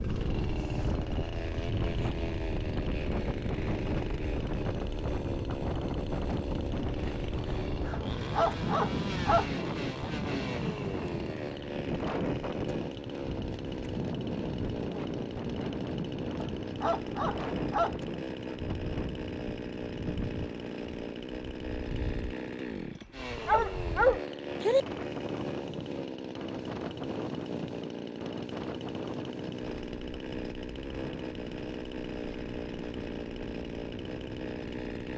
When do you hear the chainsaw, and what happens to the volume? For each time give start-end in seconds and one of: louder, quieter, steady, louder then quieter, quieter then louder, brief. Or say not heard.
0.0-35.1 steady.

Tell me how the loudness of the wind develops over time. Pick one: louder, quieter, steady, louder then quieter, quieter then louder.
quieter.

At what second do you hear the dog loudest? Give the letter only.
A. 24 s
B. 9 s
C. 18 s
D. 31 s
A.